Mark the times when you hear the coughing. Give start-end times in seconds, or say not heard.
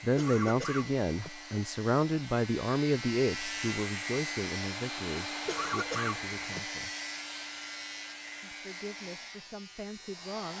0.1-1.3, 5.5-6.6.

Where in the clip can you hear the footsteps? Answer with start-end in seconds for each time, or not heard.
not heard.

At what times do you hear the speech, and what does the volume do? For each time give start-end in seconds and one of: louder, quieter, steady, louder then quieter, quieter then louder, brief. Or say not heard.
0.0-6.9 quieter
8.4-10.5 brief.